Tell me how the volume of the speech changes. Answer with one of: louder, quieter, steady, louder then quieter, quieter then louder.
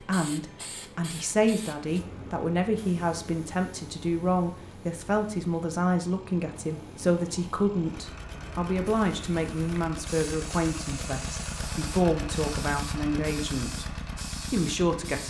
steady.